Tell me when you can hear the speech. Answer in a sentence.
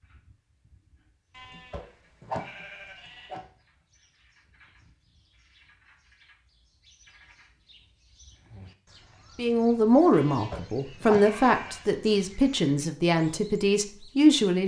The speech can be heard from 9.3 to 14.6 s.